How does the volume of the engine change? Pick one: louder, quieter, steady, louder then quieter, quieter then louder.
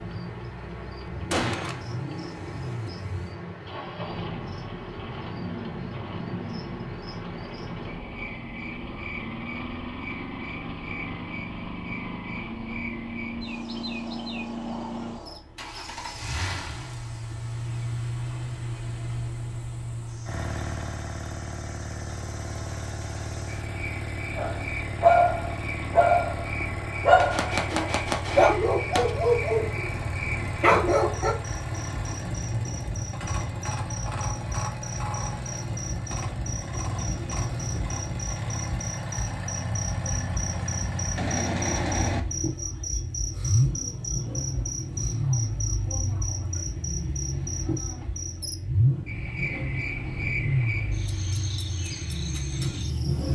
louder.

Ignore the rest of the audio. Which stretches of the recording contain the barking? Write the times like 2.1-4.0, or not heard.
24.4-31.4.